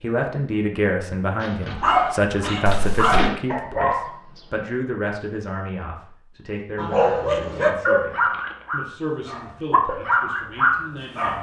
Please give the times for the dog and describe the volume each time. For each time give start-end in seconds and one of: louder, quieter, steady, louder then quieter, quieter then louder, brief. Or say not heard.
1.7-4.4 brief
6.8-11.3 quieter then louder.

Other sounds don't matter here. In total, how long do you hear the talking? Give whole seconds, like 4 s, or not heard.
11 s.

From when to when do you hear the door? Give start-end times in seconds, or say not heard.
1.4-3.4.